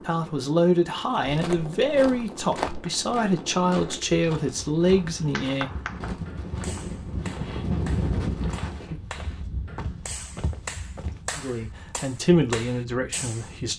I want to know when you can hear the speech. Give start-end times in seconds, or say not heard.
0.0-5.7, 11.3-13.7.